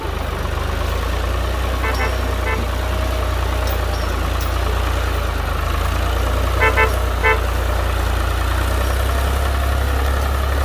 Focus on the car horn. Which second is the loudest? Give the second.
7 s.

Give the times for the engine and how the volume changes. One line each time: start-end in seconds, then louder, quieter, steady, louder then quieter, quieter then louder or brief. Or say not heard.
0.0-10.6 steady.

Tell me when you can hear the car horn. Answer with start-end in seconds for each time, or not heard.
1.8-2.6, 6.5-7.5.